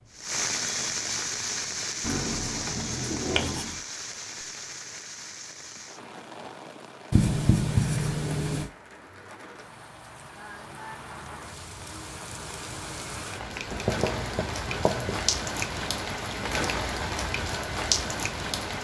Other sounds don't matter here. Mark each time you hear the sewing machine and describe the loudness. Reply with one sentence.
You can't hear the sewing machine here.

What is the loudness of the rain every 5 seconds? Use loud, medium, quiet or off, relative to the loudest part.
loud, quiet, medium, loud.